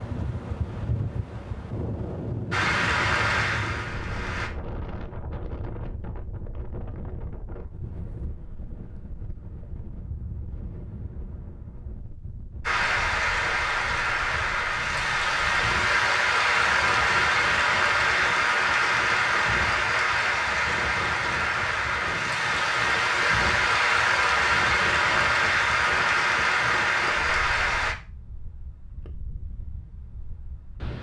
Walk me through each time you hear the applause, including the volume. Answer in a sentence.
You can hear the applause briefly from 2.5 to 4.5 s; and from 12.7 to 27.9 s, at a steady volume.